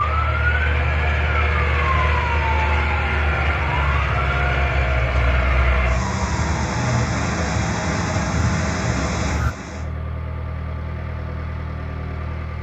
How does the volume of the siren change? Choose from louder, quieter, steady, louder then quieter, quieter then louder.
steady.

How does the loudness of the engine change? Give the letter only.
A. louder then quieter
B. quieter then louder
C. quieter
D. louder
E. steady
C.